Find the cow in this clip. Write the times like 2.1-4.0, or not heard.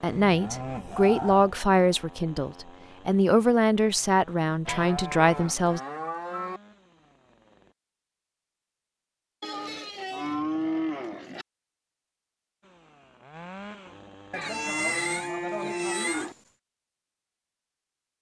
0.1-1.6, 4.7-6.6, 9.4-11.4, 14.3-16.4.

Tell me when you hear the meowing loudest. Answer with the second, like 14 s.
15 s.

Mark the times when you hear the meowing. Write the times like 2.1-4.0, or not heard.
14.4-16.4.